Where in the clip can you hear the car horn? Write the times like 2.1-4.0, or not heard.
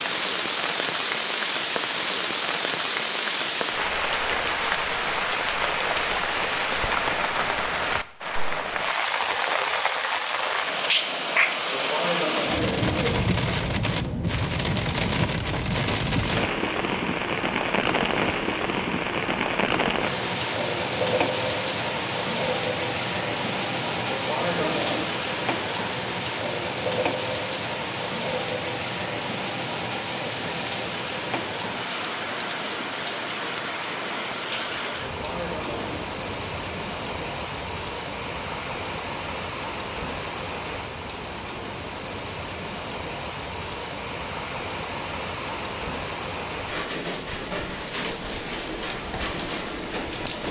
not heard.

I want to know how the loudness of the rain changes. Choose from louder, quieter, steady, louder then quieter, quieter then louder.
quieter.